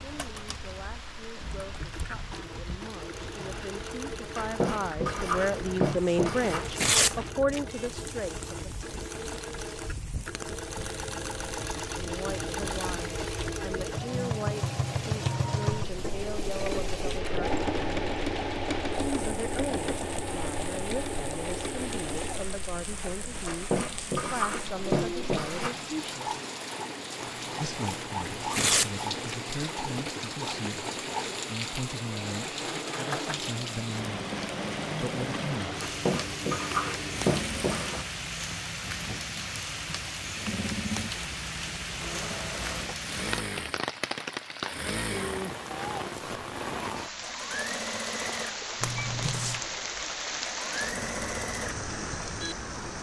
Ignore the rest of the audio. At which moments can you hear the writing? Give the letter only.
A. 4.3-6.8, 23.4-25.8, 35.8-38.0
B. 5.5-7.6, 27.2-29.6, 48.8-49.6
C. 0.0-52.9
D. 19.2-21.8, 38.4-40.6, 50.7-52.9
A.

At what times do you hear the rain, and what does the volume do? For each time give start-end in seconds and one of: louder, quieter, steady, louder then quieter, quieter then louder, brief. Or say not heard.
0.0-52.9 louder.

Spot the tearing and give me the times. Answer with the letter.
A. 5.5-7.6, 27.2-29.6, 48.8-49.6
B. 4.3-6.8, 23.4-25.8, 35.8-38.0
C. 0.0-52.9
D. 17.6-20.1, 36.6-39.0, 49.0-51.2
A.